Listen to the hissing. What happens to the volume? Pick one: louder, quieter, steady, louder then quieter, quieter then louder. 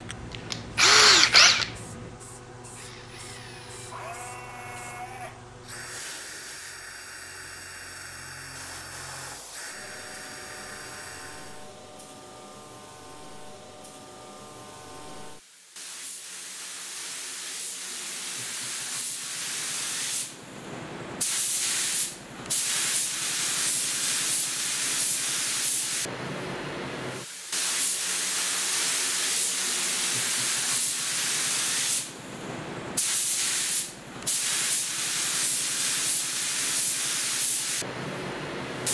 louder.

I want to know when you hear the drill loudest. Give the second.
1 s.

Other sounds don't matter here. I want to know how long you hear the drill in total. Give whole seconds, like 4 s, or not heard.
12 s.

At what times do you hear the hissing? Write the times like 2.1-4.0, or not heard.
0.0-38.8.